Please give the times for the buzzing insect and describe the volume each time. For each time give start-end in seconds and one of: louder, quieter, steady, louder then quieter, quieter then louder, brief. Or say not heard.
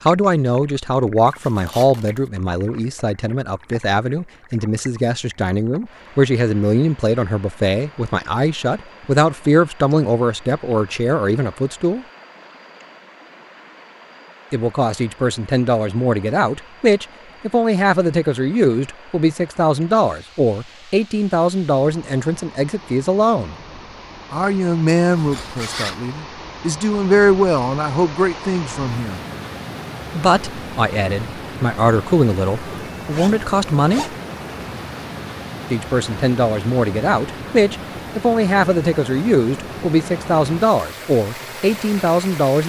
not heard.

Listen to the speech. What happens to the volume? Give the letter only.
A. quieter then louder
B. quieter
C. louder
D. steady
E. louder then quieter
D.